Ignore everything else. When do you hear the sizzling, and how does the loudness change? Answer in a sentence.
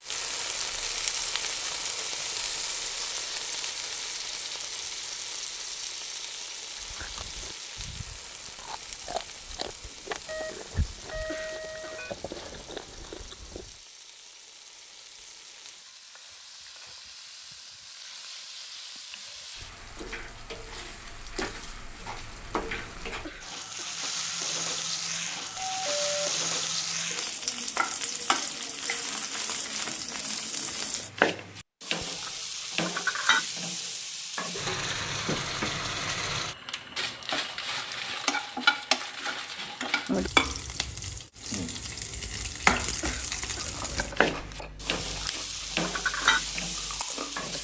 You can hear the sizzling from 0.0 to 47.5 s, getting quieter then louder.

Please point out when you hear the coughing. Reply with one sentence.
You can hear the coughing from 11.2 to 12.1 s, from 23.2 to 24.0 s and from 43.0 to 43.8 s.